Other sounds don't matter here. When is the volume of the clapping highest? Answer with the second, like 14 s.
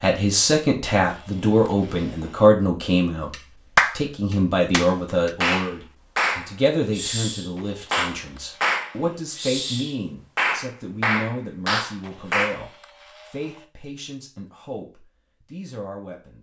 4 s.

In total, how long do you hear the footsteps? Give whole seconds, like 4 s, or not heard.
not heard.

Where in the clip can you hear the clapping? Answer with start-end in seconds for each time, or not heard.
3.3-12.7.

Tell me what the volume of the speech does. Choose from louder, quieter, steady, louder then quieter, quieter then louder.
quieter.